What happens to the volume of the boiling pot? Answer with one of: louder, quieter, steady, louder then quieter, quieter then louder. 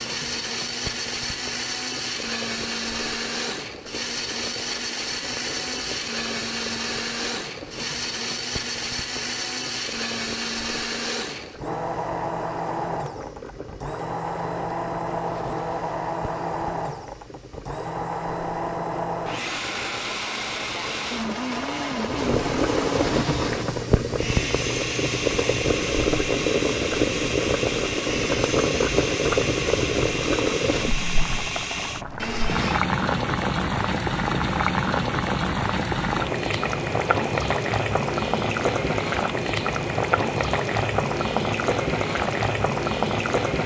louder.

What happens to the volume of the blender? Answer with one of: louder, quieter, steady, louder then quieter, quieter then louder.
steady.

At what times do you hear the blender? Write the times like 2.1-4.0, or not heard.
0.0-32.8.